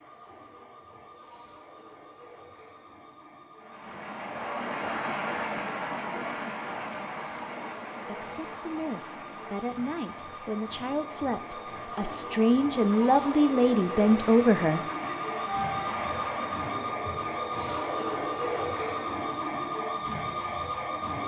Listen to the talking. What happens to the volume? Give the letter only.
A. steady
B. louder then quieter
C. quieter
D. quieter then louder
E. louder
E.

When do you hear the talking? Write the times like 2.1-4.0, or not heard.
8.1-14.8.